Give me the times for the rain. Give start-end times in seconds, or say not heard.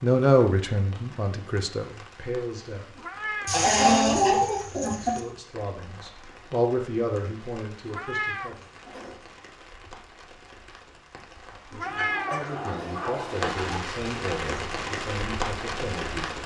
0.0-16.4.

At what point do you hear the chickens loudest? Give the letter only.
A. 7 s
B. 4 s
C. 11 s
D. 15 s
B.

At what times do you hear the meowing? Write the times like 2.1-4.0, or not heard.
3.0-3.6, 7.8-9.2, 11.7-13.1.